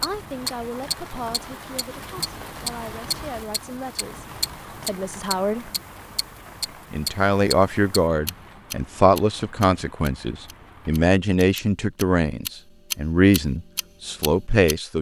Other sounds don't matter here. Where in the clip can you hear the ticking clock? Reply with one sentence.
You can hear the ticking clock from 0.0 to 14.9 s.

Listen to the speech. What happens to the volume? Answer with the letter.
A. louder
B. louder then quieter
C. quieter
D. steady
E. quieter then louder
A.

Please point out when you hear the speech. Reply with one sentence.
The speech can be heard from 0.0 to 5.7 s and from 6.9 to 14.9 s.